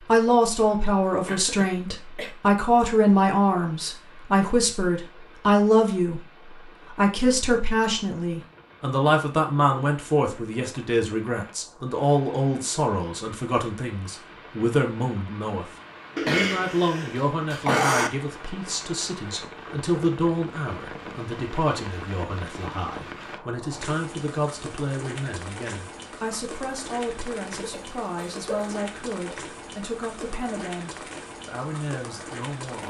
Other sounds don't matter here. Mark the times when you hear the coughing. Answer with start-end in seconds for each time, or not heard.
1.2-2.3, 16.1-18.1, 27.6-28.8.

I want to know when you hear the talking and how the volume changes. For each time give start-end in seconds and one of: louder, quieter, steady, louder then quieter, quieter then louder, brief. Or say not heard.
0.1-32.8 quieter.